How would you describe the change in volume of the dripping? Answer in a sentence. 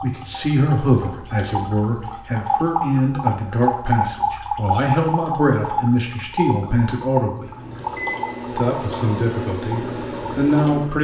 The loudness of the dripping goes up, then down.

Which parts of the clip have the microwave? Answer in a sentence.
You can hear the microwave from 7.4 to 10.9 s.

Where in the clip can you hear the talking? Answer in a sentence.
You can hear the talking from 0.0 to 7.5 s and from 8.6 to 10.9 s.